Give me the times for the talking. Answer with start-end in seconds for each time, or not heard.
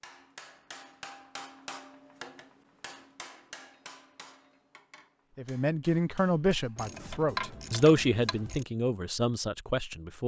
5.3-10.2.